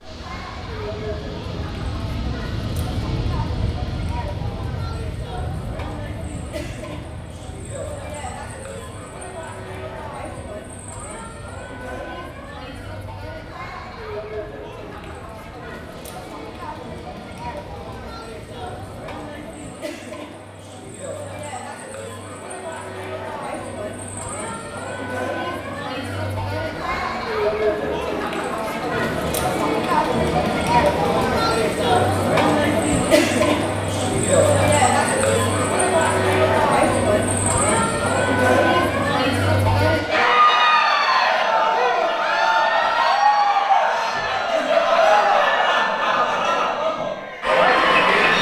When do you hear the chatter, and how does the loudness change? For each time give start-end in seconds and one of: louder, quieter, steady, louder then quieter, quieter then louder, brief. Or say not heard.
0.0-48.3 louder.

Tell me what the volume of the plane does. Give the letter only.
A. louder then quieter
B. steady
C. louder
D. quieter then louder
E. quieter
E.